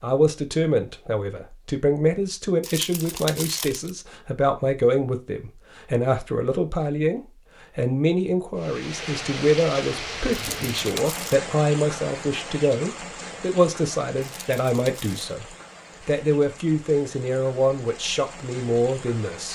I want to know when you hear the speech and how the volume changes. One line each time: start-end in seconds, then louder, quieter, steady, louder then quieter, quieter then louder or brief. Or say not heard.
0.0-19.4 steady.